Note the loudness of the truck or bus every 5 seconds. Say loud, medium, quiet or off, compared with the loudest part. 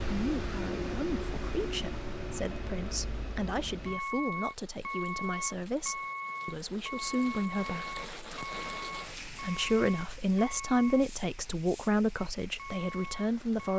loud, loud, medium.